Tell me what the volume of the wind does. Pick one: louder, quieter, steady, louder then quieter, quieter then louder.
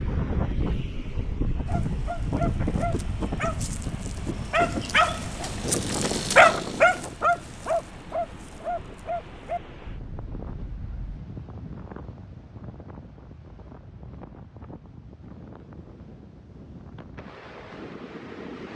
quieter.